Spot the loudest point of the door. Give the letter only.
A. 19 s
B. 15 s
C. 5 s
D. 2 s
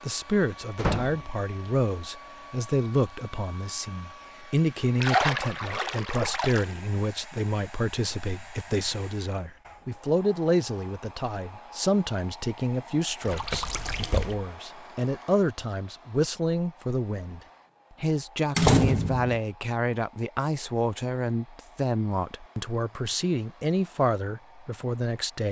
A.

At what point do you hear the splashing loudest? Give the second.
5 s.